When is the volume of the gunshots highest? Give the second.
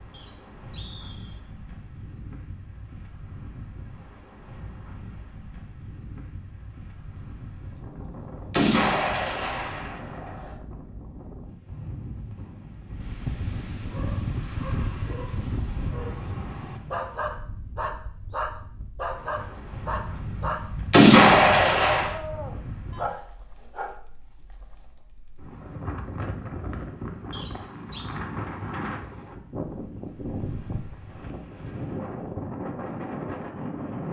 21 s.